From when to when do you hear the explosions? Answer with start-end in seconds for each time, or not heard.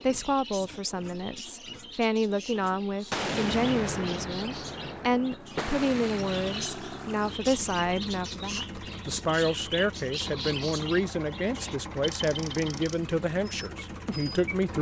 3.1-6.7.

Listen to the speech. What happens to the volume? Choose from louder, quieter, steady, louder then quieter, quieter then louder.
steady.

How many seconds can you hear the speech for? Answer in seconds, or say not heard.
15 s.